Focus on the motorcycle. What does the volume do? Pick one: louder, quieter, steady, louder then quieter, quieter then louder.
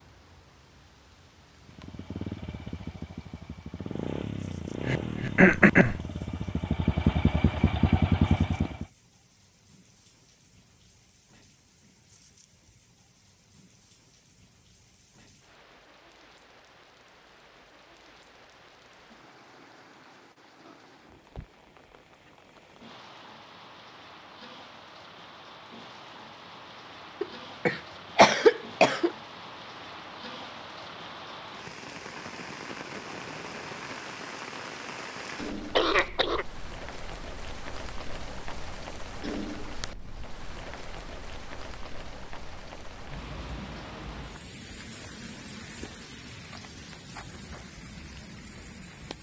louder.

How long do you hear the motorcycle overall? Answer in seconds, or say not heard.
7 s.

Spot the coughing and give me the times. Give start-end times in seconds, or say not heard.
4.8-6.0, 27.2-29.1, 35.8-36.5.